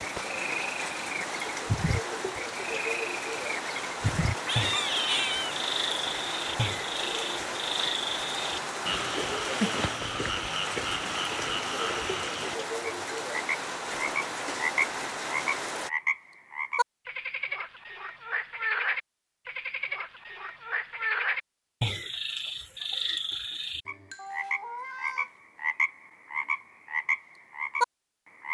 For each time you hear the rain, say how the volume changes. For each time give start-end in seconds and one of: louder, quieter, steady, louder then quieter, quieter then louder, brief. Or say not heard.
0.0-15.9 steady.